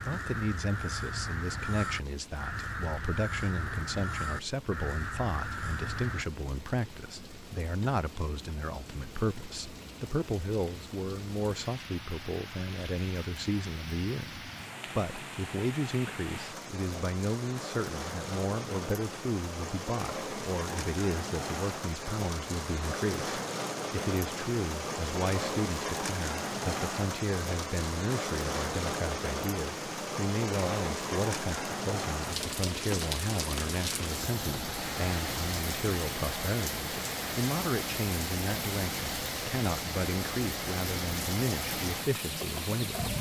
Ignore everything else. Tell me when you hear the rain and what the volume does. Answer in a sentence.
The rain can be heard from 0.0 to 43.1 s, getting louder.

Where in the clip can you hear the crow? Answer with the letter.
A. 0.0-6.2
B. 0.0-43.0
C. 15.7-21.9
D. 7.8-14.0
A.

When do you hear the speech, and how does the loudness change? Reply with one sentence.
You can hear the speech from 0.0 to 43.0 s, at a steady volume.